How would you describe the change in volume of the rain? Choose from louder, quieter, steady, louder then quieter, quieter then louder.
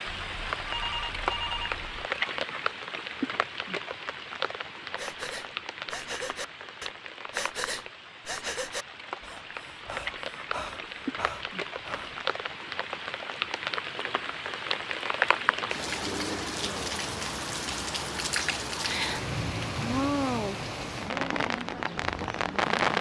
quieter then louder.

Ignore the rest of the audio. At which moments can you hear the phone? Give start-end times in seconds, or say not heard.
0.1-1.9.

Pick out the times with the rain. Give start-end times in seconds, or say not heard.
0.0-22.9.